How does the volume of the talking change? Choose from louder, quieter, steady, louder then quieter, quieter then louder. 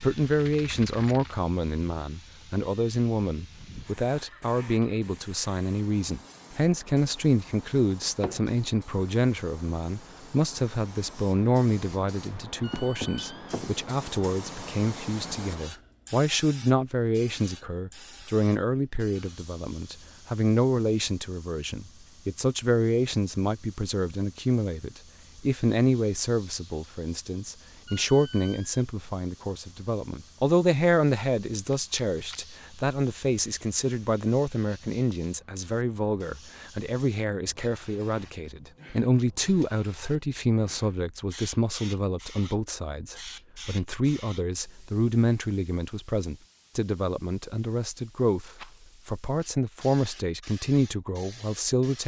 steady.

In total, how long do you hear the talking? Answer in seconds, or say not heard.
52 s.